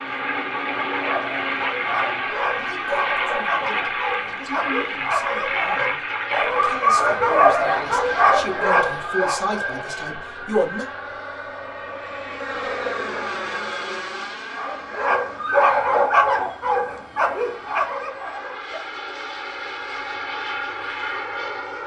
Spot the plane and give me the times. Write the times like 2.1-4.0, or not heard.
0.0-21.8.